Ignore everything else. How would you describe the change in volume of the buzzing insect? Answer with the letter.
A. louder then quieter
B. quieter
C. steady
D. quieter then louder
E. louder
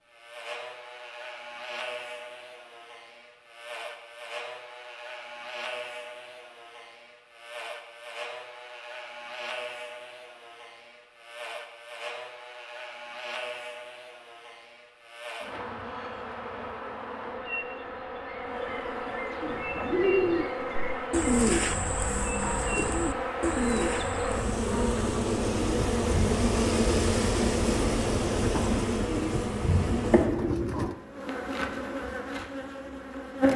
E.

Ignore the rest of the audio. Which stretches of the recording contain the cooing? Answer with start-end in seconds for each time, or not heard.
19.4-30.9.